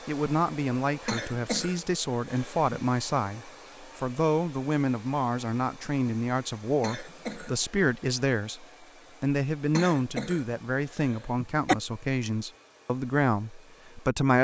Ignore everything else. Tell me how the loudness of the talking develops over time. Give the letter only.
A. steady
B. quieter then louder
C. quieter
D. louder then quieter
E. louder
A.